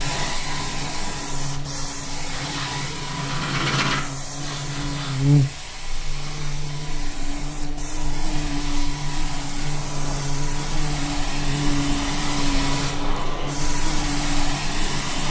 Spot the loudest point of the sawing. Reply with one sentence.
The volume of the sawing peaks at 4 seconds.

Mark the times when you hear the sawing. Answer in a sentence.
You can hear the sawing from 2.2 to 5.2 s.